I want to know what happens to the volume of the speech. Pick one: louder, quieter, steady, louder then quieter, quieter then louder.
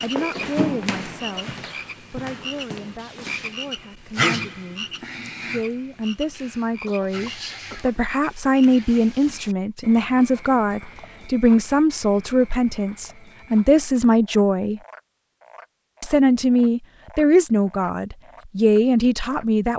louder.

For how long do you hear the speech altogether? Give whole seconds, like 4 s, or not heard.
18 s.